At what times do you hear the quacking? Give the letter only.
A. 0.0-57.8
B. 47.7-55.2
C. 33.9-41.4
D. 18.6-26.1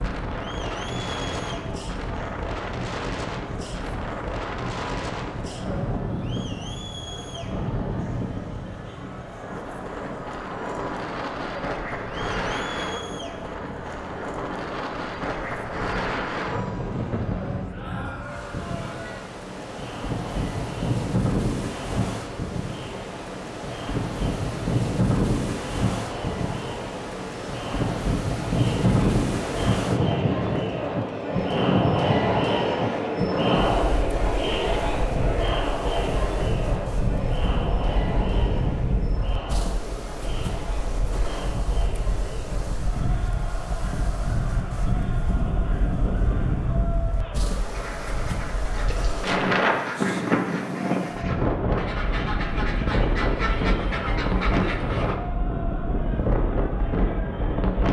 B.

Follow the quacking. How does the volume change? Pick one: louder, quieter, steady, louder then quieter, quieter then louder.
louder.